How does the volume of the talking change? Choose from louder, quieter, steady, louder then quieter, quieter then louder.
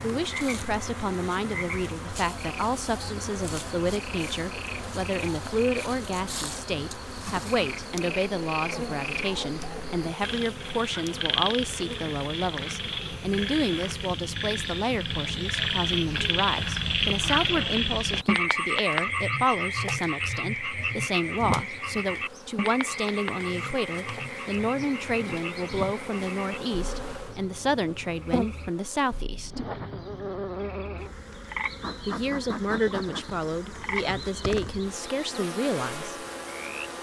steady.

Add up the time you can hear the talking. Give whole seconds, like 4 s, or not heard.
34 s.